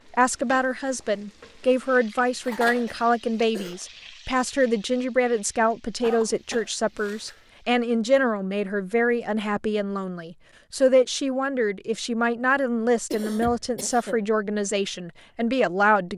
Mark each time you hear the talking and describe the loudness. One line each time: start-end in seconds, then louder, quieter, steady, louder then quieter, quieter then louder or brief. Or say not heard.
0.1-16.1 steady.